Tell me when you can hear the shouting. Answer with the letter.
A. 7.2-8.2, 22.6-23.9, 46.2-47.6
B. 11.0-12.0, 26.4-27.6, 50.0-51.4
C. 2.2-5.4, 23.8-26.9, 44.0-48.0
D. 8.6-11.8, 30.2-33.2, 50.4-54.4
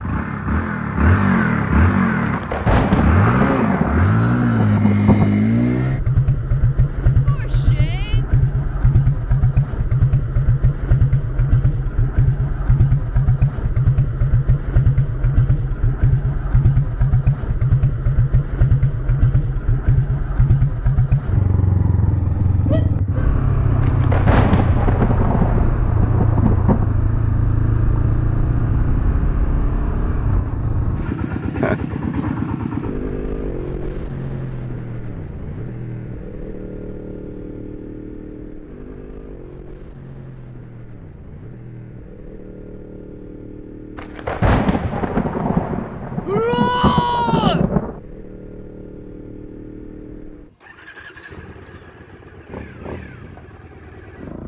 A.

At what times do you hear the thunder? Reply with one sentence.
You can hear the thunder from 2.2 to 5.4 s, from 23.8 to 26.9 s and from 44.0 to 48.0 s.